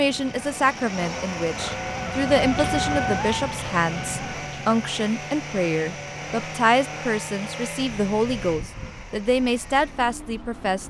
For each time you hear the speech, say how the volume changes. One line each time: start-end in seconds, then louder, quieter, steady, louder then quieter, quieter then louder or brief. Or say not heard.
0.0-10.8 steady.